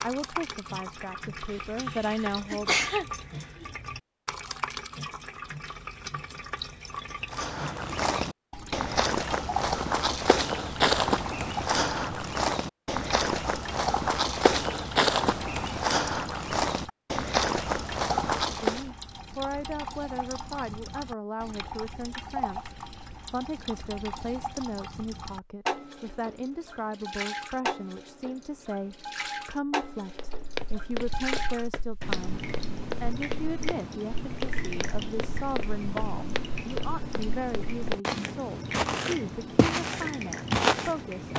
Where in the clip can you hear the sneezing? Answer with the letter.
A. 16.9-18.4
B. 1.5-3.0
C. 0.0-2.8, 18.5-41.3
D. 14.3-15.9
B.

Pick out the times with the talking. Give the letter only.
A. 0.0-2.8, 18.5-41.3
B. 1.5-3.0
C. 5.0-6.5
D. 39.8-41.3
A.